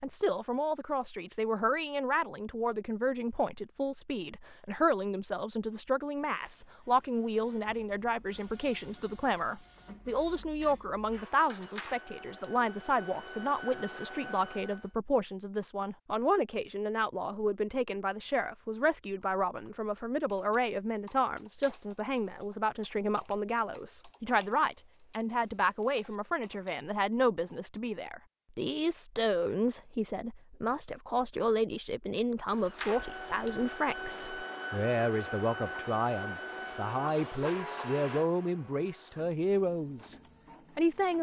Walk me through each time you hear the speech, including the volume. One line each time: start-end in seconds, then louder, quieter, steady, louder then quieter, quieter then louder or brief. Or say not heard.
0.0-41.1 steady.